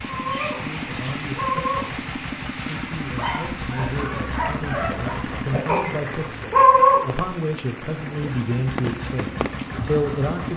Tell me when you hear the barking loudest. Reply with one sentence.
The volume of the barking peaks at 7 seconds.